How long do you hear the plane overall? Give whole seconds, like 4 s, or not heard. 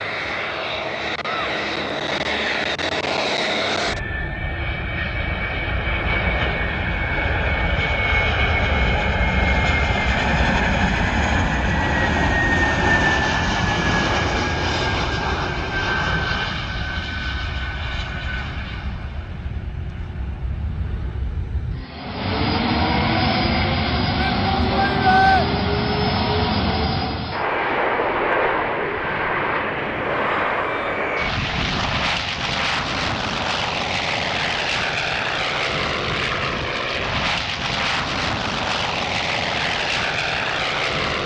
41 s.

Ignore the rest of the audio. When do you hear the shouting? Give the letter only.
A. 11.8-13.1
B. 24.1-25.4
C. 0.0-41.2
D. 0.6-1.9
B.